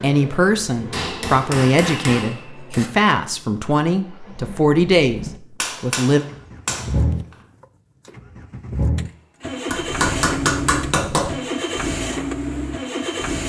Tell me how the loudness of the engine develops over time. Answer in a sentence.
The volume of the engine goes up.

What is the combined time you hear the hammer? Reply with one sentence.
The hammer can be heard for 5 seconds in total.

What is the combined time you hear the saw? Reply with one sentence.
The saw can't be heard in this clip.